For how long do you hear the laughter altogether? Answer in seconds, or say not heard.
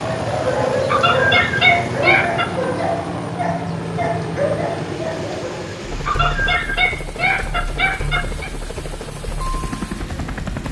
4 s.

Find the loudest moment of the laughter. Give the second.
2 s.